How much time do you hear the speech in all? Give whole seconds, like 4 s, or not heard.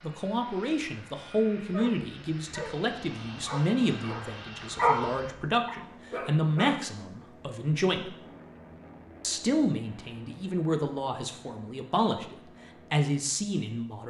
13 s.